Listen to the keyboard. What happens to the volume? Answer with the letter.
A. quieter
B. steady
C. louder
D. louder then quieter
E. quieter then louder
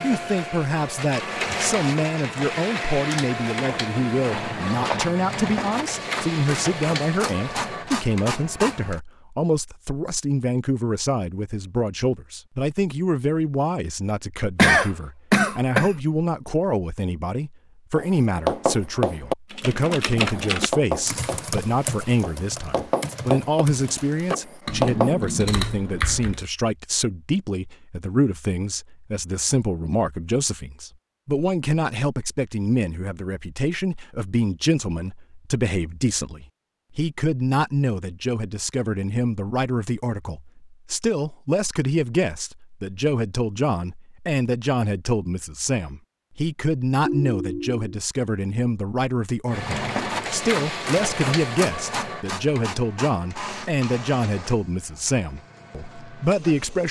E.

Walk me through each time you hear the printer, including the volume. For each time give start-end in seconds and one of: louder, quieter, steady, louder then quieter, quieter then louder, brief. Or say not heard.
0.0-9.0 steady
49.5-56.8 quieter.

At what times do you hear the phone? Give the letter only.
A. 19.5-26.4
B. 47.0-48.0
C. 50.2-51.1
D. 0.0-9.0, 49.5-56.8
B.